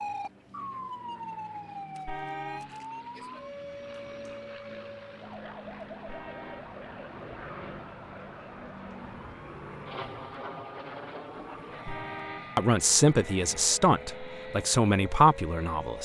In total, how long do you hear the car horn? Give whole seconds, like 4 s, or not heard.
2 s.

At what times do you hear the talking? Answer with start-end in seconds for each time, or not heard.
12.6-16.0.